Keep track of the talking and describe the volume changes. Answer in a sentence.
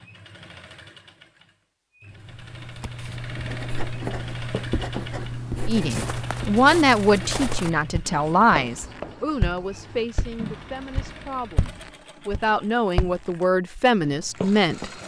The volume of the talking goes down, then up.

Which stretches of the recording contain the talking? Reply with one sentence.
You can hear the talking from 5.7 to 14.9 s.